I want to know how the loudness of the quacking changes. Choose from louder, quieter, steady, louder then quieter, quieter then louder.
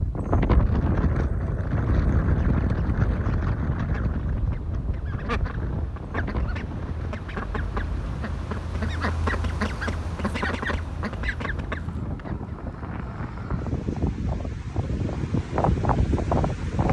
louder.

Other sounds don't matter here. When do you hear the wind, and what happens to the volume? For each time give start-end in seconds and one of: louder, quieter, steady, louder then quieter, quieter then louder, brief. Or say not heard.
0.0-16.8 quieter then louder.